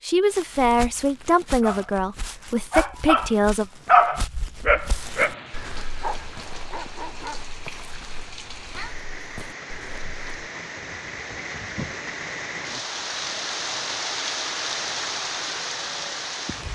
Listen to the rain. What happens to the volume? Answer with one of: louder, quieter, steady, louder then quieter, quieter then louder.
louder.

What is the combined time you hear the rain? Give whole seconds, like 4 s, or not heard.
12 s.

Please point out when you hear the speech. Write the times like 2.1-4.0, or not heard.
0.0-3.6.